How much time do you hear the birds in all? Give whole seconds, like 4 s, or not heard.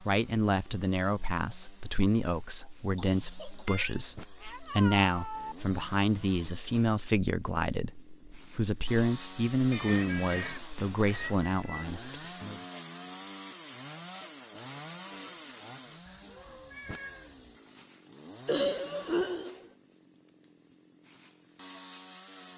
not heard.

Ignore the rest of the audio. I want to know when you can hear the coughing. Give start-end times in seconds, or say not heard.
2.6-3.9, 9.8-10.7, 18.4-19.6.